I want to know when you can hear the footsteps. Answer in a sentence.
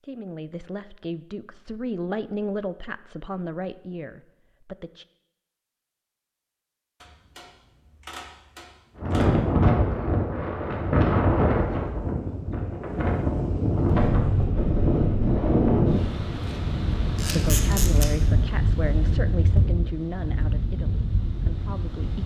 You can't hear the footsteps here.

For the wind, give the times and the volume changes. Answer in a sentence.
You can hear the wind from 8.9 to 22.2 s, getting quieter.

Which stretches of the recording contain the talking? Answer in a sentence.
You can hear the talking from 0.0 to 5.0 s and from 17.3 to 22.2 s.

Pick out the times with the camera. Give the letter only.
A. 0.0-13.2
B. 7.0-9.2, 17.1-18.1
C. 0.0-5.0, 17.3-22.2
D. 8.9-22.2
B.